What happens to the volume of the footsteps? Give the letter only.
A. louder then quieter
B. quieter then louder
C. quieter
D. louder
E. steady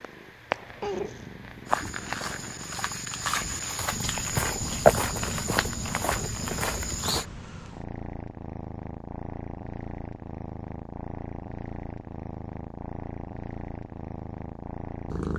A.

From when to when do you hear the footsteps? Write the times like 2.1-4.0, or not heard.
1.6-7.2.